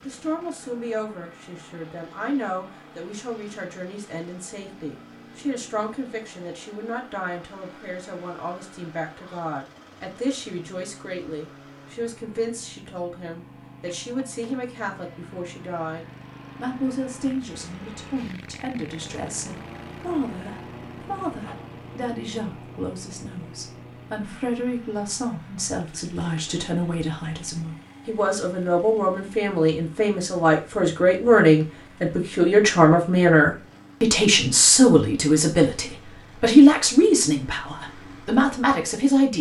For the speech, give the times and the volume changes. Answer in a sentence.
You can hear the speech from 0.0 to 39.3 s, getting louder.